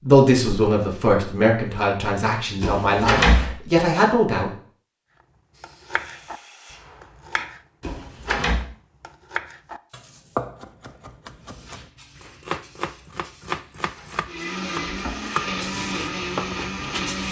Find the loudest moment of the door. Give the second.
3 s.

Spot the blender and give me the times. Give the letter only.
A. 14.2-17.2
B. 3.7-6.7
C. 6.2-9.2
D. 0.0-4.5
A.